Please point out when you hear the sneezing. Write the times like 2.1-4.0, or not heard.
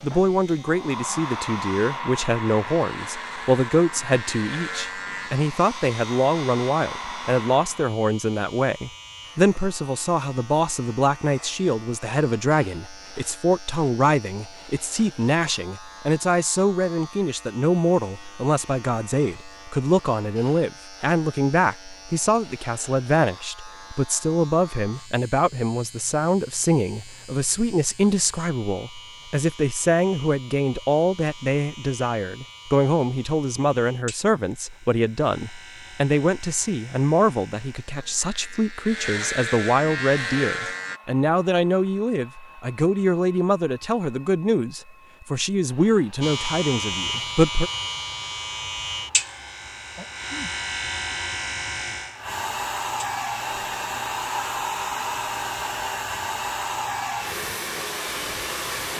50.0-50.5.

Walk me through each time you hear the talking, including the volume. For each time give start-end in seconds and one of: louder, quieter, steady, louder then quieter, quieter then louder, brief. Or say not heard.
0.0-47.7 steady.